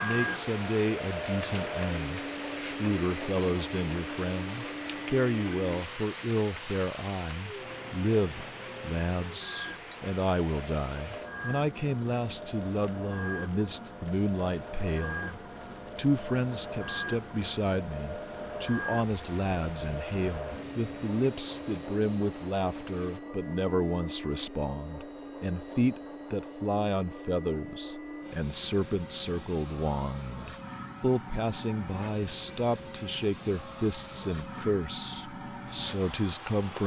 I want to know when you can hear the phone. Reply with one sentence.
You can't hear the phone here.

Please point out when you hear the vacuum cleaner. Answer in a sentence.
The vacuum cleaner can be heard from 0.0 to 36.8 s.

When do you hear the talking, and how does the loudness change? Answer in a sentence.
You can hear the talking from 0.0 to 36.8 s, at a steady volume.